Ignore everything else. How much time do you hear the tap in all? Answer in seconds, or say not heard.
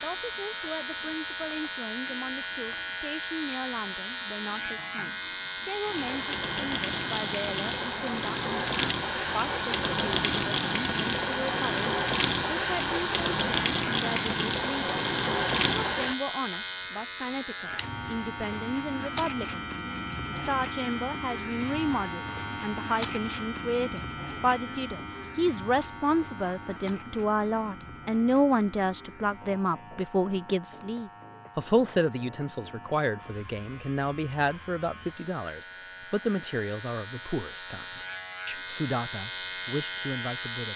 16 s.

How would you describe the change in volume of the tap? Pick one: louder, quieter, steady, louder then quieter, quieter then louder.
louder.